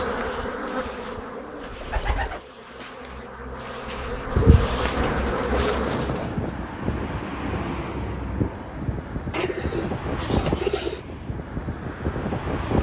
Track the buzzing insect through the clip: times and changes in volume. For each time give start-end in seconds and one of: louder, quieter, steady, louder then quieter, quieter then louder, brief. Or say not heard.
0.0-6.2 quieter then louder.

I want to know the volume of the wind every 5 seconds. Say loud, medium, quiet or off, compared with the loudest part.
off, loud, loud.